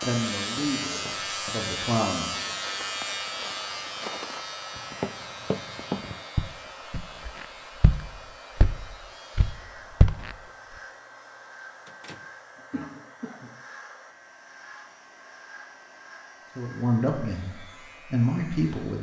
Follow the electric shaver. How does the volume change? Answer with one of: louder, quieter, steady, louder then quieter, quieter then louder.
quieter.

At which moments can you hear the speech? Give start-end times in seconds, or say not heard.
0.0-2.5, 16.6-18.9.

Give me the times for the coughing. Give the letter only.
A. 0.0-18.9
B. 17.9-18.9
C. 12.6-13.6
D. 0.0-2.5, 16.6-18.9
C.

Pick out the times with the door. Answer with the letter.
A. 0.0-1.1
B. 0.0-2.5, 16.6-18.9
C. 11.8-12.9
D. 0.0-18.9
C.